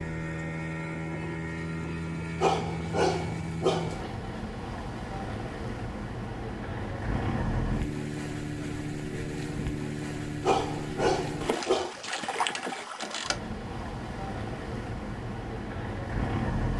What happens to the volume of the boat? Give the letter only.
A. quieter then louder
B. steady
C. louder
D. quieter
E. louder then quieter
B.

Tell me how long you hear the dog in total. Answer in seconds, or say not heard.
3 s.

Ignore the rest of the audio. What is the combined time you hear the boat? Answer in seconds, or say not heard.
17 s.